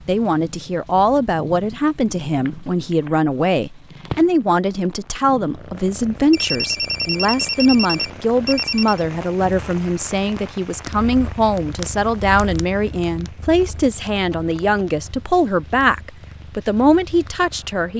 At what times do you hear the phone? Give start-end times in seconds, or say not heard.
2.5-3.2, 6.3-9.1, 13.6-14.8.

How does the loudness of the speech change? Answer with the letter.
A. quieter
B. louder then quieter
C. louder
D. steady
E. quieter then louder
D.